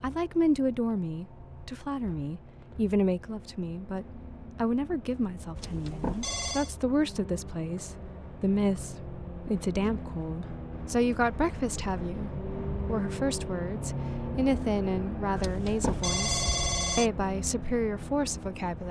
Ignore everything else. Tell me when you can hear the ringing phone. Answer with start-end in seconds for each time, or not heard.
5.5-6.7, 15.3-17.1.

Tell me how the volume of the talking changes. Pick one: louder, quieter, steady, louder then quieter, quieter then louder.
steady.